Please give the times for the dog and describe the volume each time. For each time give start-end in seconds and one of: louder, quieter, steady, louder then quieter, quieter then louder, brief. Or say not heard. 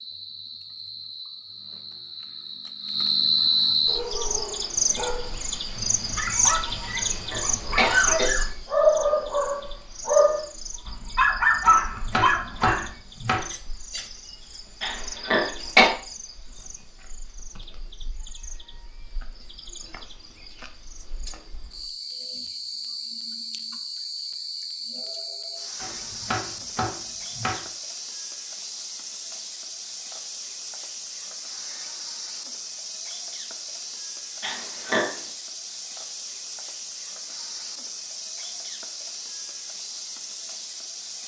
3.9-12.9 louder.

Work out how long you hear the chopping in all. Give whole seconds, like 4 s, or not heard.
4 s.